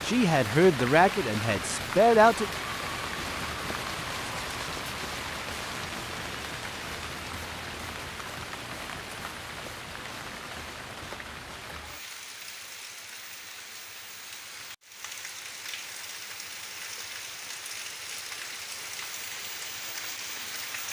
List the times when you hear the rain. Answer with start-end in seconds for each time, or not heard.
0.0-20.8.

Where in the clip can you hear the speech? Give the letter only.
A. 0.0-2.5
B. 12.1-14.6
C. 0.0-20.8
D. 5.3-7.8
A.